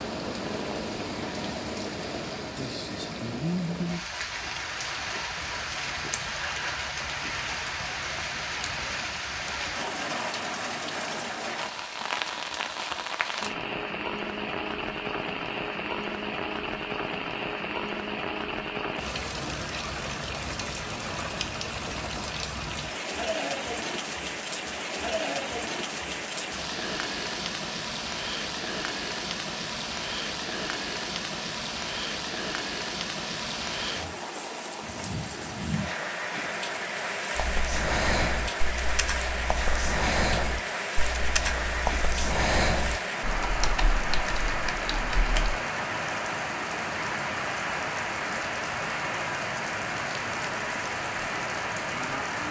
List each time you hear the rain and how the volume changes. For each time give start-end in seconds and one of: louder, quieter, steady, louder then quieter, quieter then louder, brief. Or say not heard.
0.0-52.4 steady.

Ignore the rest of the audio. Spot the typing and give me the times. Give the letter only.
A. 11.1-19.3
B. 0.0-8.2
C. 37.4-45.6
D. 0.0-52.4
C.